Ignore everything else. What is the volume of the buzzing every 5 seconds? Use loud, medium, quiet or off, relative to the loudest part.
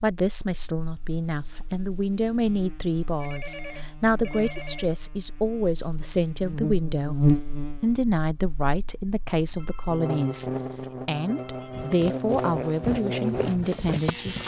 quiet, loud, loud.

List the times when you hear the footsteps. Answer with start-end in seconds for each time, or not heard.
11.7-14.4.